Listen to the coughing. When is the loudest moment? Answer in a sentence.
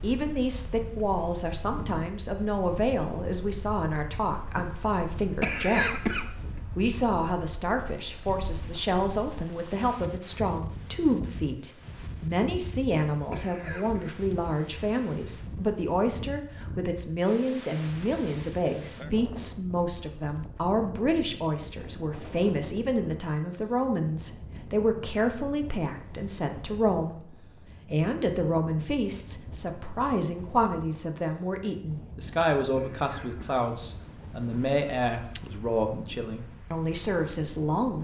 The loudest moment of the coughing is at 6 seconds.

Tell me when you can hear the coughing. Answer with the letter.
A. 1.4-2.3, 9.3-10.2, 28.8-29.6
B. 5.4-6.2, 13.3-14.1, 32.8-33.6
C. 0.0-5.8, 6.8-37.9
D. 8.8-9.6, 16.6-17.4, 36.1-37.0
B.